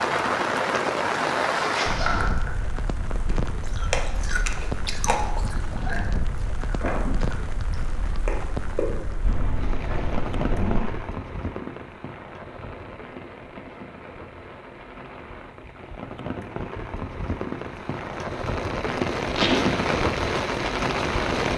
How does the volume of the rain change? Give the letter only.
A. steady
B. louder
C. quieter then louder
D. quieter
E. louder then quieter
C.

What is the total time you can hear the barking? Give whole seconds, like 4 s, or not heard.
not heard.